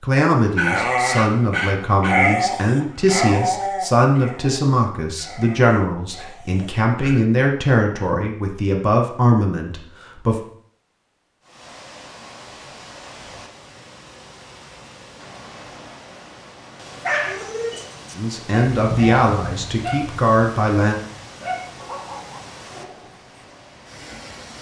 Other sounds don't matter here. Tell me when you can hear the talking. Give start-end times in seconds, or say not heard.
0.0-10.4, 18.1-21.0.